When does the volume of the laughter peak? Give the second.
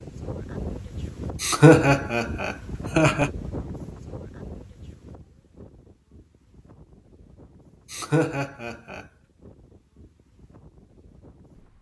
2 s.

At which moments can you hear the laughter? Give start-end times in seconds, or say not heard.
1.4-3.3, 7.9-9.1.